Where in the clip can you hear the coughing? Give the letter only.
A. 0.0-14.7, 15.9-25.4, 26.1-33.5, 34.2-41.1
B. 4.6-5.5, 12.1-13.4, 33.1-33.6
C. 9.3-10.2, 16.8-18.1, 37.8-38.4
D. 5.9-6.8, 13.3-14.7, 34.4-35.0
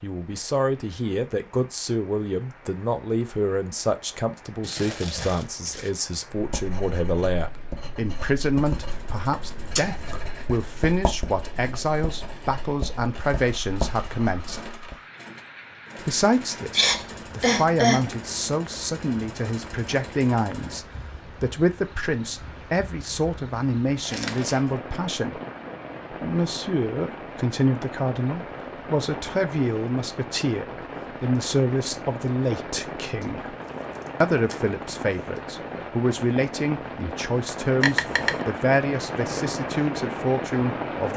C.